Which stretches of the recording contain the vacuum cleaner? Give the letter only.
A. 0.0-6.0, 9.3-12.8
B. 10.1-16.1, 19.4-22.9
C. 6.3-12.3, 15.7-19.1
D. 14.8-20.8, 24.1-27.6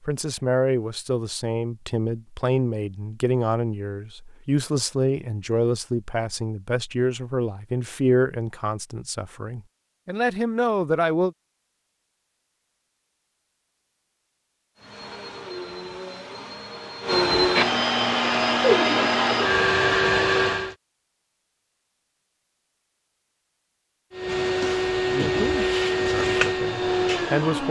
D.